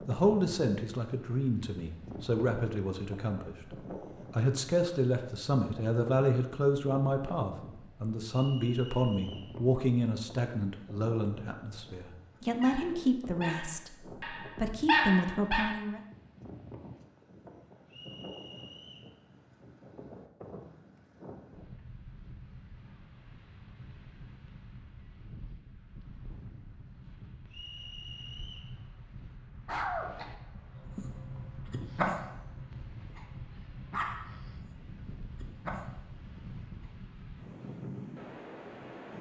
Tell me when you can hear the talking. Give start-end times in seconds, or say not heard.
0.1-3.5, 4.3-16.0.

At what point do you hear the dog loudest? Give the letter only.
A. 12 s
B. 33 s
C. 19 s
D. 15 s
D.